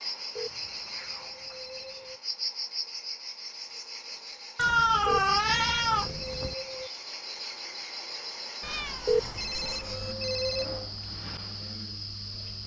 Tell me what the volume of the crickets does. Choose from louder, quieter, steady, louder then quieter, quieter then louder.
steady.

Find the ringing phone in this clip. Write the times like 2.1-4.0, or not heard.
0.3-2.2, 5.0-6.9, 9.1-10.8.